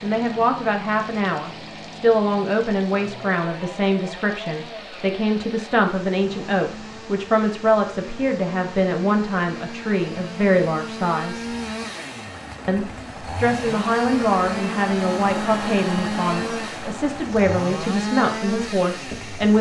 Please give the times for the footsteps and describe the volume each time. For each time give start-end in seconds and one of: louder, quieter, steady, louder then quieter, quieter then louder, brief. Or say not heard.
not heard.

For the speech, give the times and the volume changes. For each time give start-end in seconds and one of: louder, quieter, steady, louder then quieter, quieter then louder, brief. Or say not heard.
0.0-11.4 steady
12.7-19.5 steady.